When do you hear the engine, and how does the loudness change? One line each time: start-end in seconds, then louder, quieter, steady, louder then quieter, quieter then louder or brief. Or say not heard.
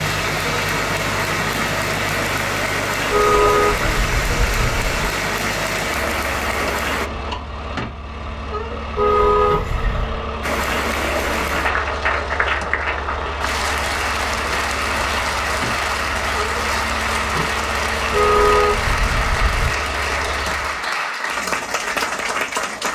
0.0-20.9 steady.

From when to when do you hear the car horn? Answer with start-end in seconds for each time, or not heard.
3.1-5.0, 8.9-10.2, 18.1-19.8.